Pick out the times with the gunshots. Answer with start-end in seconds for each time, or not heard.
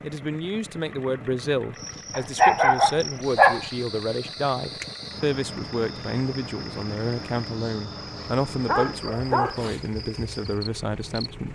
not heard.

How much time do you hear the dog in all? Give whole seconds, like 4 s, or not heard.
3 s.